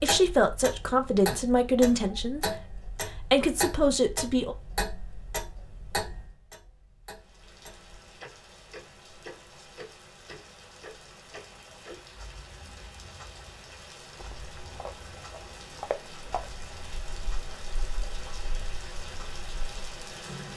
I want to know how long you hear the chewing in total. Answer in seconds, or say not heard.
2 s.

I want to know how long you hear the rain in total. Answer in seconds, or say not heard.
13 s.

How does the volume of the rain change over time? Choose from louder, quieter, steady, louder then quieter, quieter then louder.
louder.